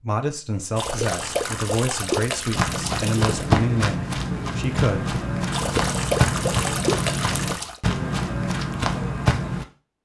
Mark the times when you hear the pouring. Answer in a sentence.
The pouring can be heard from 0.8 to 3.5 s and from 5.5 to 7.8 s.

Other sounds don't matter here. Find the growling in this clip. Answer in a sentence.
You can't hear the growling here.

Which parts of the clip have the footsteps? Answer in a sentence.
The footsteps can be heard from 2.5 to 9.7 s.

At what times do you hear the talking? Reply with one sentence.
You can hear the talking from 0.0 to 5.2 s.